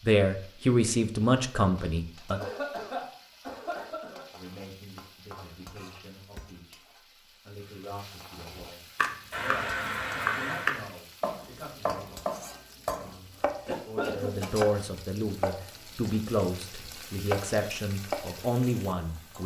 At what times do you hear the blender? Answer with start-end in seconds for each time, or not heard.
not heard.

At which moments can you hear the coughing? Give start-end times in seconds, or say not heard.
2.3-4.2, 9.3-10.8, 13.7-14.5.